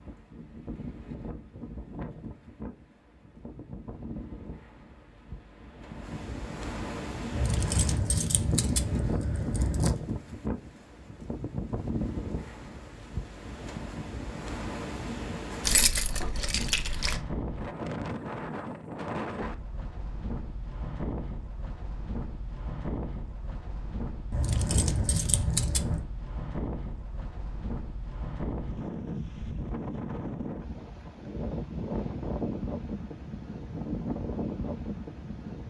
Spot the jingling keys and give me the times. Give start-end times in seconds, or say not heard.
7.3-10.0, 15.6-17.2, 24.3-26.1.